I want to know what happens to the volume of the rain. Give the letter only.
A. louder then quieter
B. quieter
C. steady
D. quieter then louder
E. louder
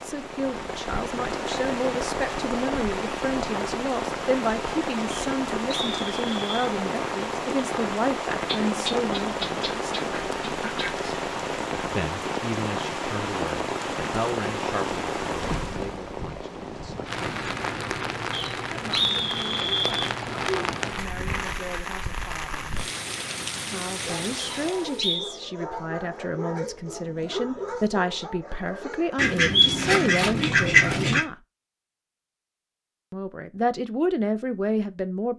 C.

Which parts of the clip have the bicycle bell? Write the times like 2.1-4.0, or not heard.
not heard.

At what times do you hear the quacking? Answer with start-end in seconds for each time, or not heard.
8.4-11.1, 29.1-31.2.